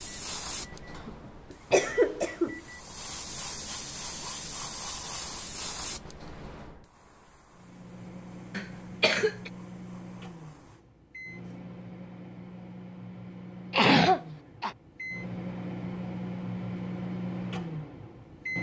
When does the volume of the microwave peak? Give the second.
17 s.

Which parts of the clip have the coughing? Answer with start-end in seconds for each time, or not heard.
0.9-2.6, 8.5-9.5, 13.7-14.8.